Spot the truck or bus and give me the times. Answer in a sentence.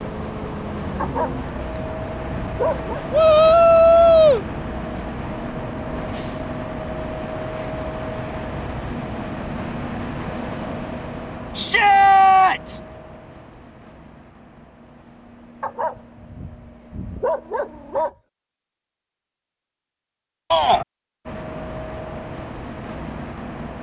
You can hear the truck or bus from 0.0 to 18.1 s and from 21.2 to 23.7 s.